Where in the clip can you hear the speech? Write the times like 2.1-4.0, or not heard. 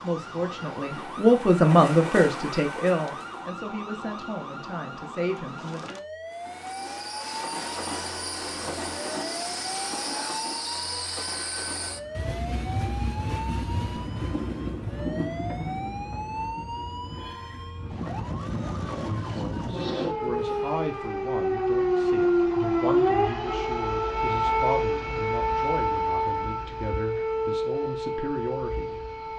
0.0-6.0, 19.0-29.1.